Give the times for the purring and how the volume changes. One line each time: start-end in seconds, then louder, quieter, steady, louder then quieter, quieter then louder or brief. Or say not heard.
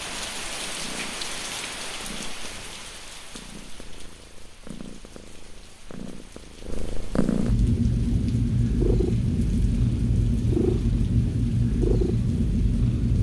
0.0-13.1 louder.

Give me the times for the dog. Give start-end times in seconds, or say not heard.
not heard.